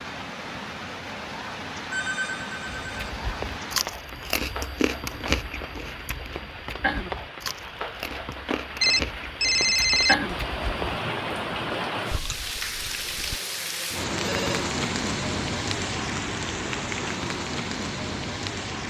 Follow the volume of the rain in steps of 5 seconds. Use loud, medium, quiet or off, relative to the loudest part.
medium, medium, loud, loud.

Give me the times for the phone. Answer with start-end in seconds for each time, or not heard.
1.9-3.1, 8.8-10.4, 14.2-14.7.